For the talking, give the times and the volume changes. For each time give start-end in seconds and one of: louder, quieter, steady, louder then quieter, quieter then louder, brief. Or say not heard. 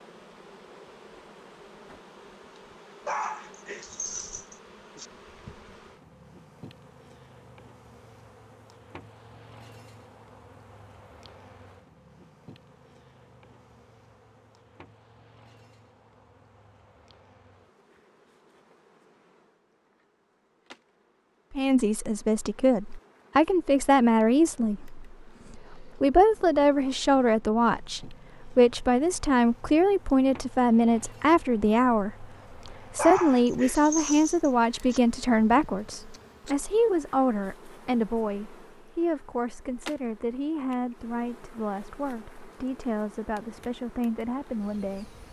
21.5-45.2 quieter.